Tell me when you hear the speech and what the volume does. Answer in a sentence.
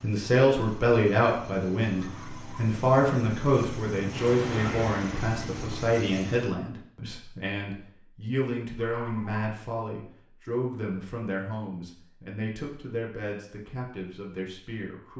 You can hear the speech from 0.0 to 15.1 s, getting quieter.